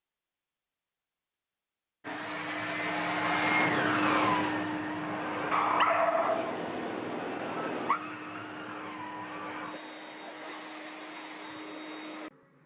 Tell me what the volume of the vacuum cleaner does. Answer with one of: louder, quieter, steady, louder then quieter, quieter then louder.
quieter.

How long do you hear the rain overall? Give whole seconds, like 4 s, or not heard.
not heard.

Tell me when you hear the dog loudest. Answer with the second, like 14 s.
6 s.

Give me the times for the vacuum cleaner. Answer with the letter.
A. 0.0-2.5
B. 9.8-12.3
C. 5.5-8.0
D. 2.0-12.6
D.